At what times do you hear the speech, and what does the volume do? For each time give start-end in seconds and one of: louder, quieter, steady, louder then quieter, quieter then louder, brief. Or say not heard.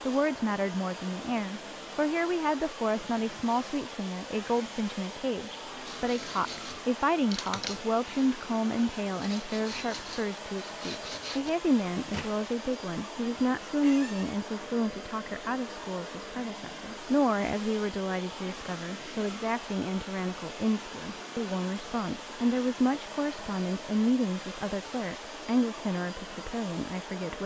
0.1-27.4 steady.